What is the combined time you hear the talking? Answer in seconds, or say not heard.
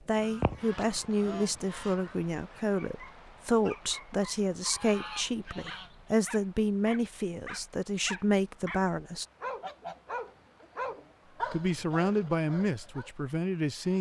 12 s.